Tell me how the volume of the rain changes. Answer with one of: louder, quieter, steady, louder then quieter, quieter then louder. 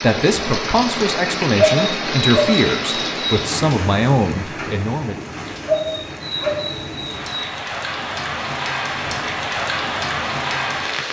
quieter then louder.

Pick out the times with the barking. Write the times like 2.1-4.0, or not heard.
1.6-3.5, 5.7-7.5.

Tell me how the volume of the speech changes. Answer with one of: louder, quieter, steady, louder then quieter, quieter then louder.
steady.